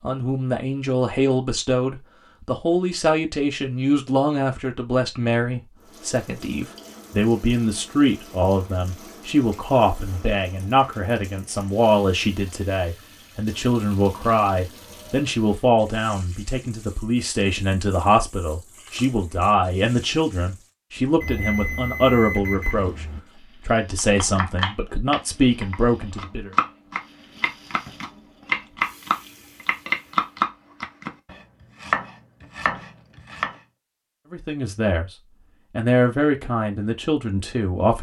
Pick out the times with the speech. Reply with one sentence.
The speech can be heard from 0.0 to 26.5 s and from 34.3 to 37.9 s.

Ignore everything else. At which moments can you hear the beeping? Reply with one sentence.
The beeping can be heard from 21.2 to 23.2 s.